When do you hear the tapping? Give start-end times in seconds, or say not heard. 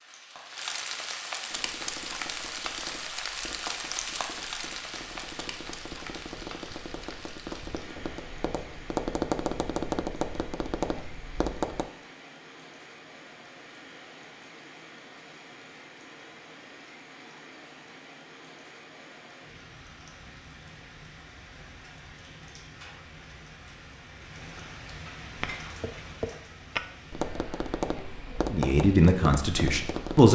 1.5-11.9, 25.4-30.2.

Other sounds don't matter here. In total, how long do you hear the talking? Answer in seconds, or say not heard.
2 s.